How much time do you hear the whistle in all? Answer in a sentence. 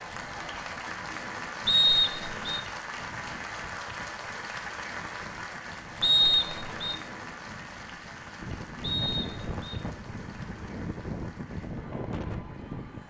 You can hear the whistle for 3 seconds altogether.